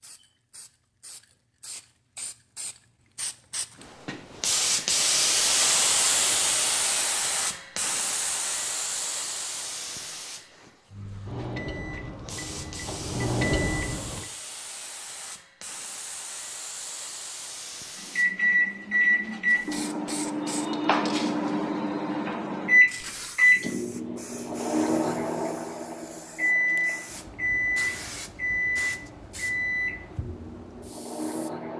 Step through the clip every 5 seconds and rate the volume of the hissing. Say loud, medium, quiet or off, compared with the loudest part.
medium, loud, quiet, quiet, quiet, quiet, quiet.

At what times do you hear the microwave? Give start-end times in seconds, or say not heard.
10.9-14.3, 18.1-31.7.